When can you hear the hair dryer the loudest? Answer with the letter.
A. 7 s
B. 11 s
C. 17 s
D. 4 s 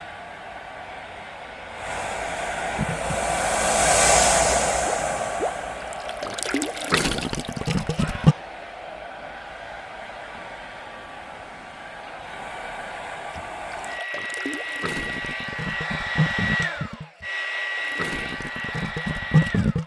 D.